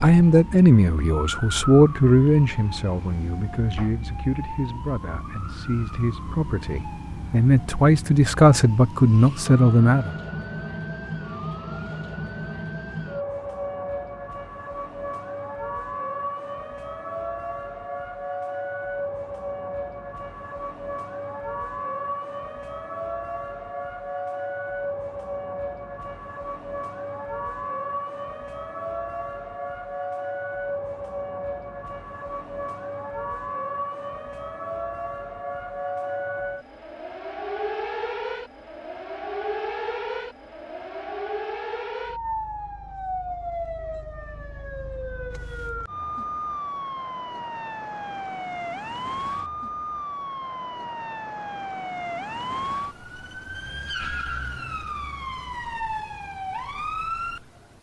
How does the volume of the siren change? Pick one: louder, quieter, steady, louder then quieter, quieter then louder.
steady.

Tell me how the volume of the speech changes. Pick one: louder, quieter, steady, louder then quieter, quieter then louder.
quieter then louder.